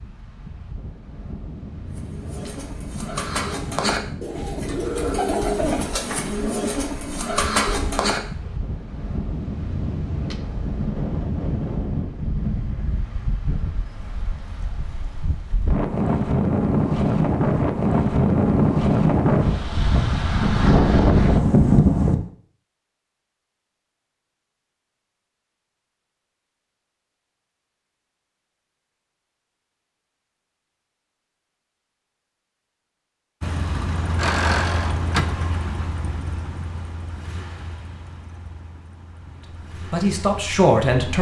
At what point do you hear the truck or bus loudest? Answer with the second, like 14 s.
35 s.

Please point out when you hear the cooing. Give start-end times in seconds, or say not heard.
1.9-8.4.